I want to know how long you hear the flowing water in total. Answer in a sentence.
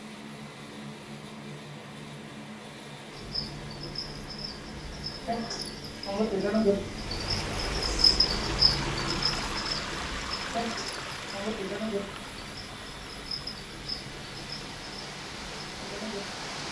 The flowing water can be heard for 10 seconds in total.